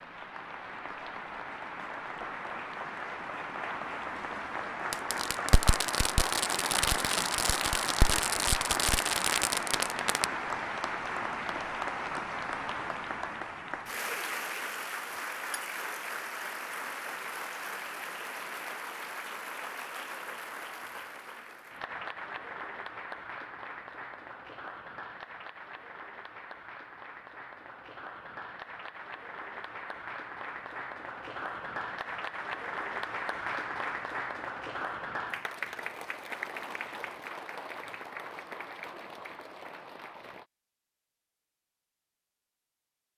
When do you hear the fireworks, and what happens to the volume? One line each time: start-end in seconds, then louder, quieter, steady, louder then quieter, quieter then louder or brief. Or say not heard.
4.9-10.2 steady.